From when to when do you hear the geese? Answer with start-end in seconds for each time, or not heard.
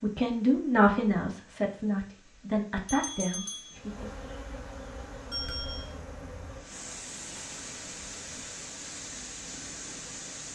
not heard.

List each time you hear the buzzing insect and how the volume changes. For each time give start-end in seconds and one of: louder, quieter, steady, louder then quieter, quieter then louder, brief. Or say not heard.
3.7-10.5 quieter.